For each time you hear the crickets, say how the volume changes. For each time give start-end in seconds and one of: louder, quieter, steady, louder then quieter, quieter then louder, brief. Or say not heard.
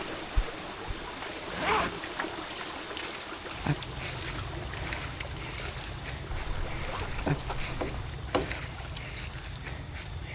0.2-10.3 louder.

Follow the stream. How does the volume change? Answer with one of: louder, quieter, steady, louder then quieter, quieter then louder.
quieter.